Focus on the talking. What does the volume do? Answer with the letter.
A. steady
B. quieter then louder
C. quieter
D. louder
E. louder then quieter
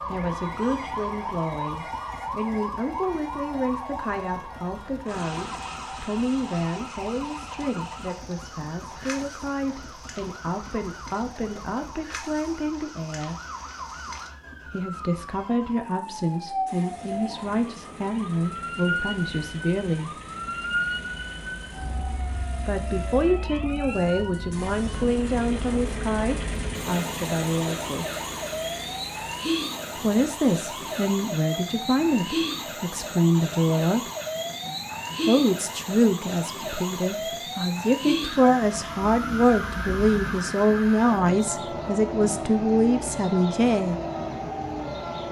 D.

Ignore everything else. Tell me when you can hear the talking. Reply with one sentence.
The talking can be heard from 0.1 to 13.3 s, from 14.7 to 20.1 s, from 22.6 to 28.1 s, from 30.0 to 34.0 s and from 35.2 to 44.0 s.